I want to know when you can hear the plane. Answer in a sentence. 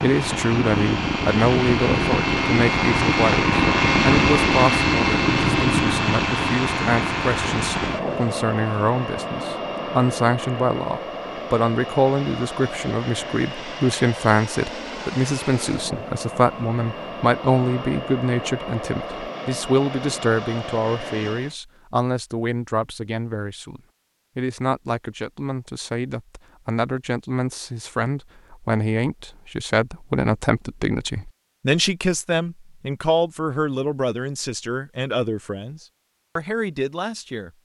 The plane can be heard from 0.0 to 21.6 s.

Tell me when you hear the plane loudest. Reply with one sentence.
The volume of the plane peaks at 4 seconds.